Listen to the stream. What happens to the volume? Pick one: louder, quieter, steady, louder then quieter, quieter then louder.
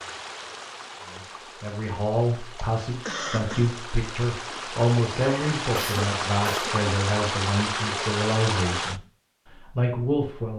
louder.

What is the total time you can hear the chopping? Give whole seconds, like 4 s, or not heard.
not heard.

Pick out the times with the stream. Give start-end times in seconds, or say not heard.
0.0-9.0.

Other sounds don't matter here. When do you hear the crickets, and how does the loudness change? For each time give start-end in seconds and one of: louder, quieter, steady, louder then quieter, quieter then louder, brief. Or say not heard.
not heard.